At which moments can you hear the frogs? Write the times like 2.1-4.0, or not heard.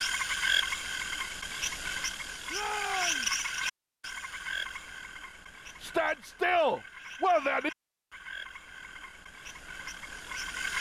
0.0-10.7.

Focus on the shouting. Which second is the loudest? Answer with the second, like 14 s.
7 s.